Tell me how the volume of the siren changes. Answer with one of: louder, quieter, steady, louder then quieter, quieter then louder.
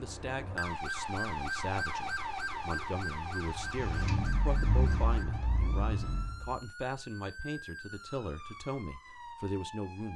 quieter.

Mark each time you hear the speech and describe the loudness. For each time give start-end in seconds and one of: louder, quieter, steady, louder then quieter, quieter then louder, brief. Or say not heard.
0.0-10.1 steady.